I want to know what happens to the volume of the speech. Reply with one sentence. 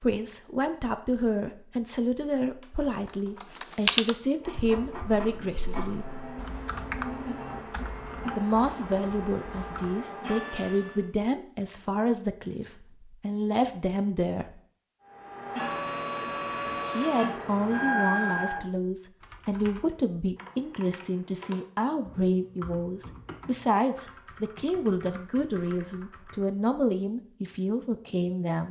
The volume of the speech stays about the same.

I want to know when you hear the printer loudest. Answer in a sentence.
The loudest moment of the printer is at 18 seconds.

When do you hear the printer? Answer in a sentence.
The printer can be heard from 4.2 to 11.1 s and from 15.1 to 18.6 s.